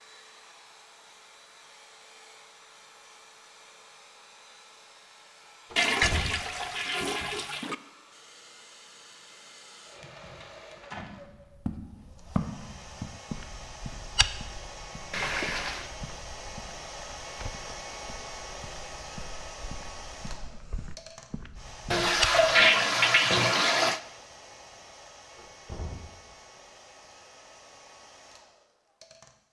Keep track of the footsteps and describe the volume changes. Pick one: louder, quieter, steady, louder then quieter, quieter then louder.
quieter.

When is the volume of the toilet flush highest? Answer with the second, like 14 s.
23 s.